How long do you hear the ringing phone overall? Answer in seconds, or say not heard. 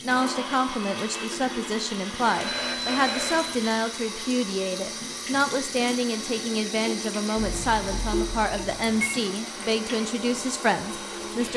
3 s.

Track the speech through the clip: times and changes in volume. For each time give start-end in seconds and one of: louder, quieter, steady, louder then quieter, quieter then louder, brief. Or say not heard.
0.0-11.5 steady.